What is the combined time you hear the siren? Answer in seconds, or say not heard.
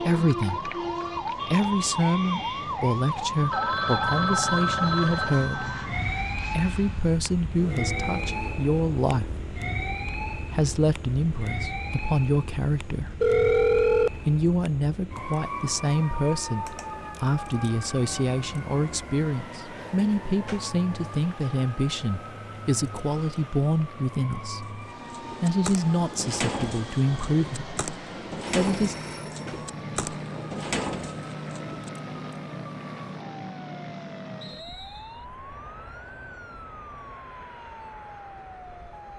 39 s.